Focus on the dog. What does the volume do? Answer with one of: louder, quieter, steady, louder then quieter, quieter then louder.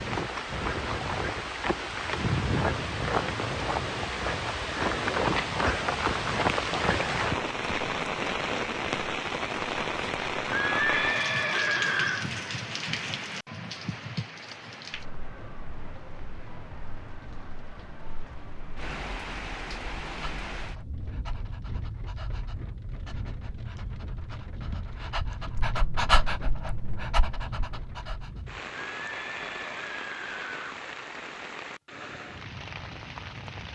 louder then quieter.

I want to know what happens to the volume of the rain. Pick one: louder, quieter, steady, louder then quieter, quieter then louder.
quieter.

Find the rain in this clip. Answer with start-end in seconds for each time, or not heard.
0.0-33.7.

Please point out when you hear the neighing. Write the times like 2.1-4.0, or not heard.
10.5-12.3, 28.9-30.8.